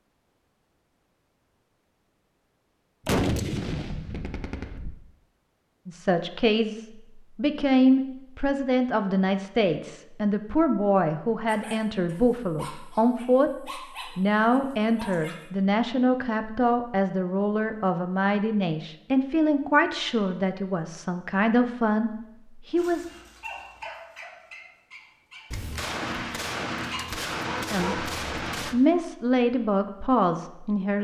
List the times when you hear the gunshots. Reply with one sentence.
The gunshots can be heard from 3.0 to 5.0 s and from 25.5 to 28.8 s.